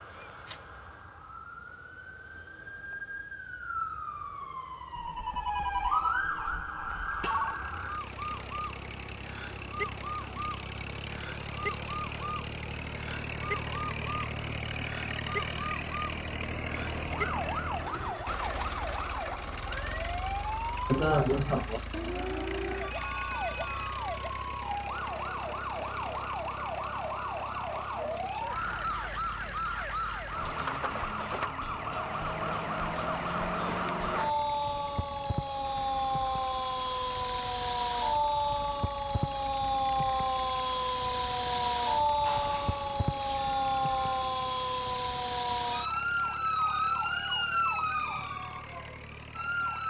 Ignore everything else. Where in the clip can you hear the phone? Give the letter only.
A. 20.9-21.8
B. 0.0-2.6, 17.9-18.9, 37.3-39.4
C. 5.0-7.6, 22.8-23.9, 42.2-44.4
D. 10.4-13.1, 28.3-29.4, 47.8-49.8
C.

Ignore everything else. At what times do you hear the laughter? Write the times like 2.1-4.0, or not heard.
20.9-21.8.